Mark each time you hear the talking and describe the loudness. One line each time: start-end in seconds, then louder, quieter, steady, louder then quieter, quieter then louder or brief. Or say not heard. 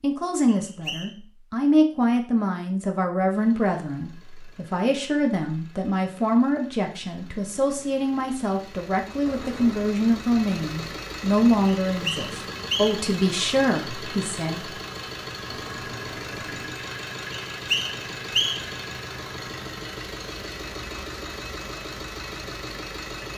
0.0-14.7 steady.